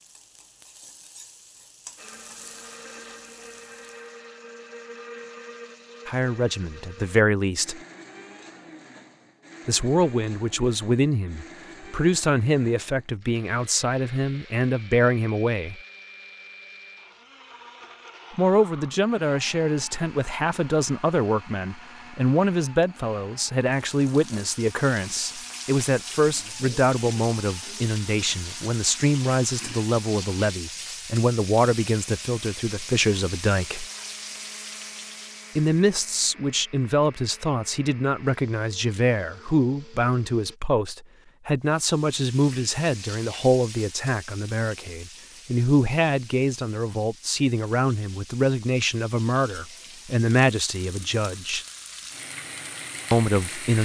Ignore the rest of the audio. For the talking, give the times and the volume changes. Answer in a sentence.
You can hear the talking briefly from 6.0 to 7.8 s; from 9.7 to 15.8 s, at a steady volume; from 18.4 to 33.9 s, at a steady volume; from 35.5 to 51.6 s, at a steady volume; and briefly from 53.1 to 53.8 s.